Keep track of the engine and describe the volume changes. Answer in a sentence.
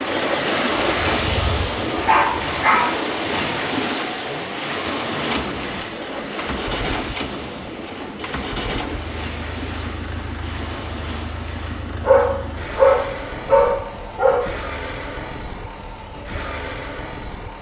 The loudness of the engine stays about the same.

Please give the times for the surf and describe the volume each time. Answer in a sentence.
You can hear the surf from 0.0 to 12.1 s, getting quieter.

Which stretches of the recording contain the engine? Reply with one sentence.
You can hear the engine from 0.0 to 17.5 s.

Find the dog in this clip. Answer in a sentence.
You can hear the dog from 1.2 to 3.0 s and from 12.0 to 14.5 s.